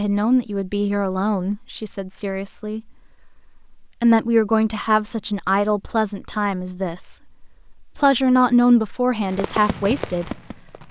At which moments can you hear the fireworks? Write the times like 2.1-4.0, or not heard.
9.2-10.8.